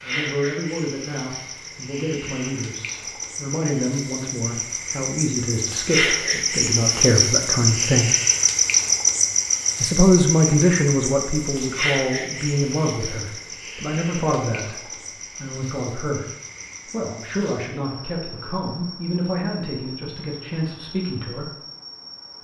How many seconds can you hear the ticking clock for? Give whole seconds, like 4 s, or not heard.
not heard.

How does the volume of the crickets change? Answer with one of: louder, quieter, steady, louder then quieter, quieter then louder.
louder then quieter.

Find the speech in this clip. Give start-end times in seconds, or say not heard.
0.0-8.1, 9.8-16.2, 16.9-21.5.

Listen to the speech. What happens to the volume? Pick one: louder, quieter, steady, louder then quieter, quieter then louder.
louder then quieter.